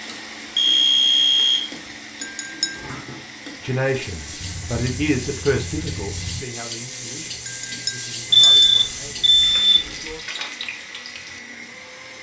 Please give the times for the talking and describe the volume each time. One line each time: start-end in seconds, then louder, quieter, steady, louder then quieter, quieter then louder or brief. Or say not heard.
3.6-10.2 quieter.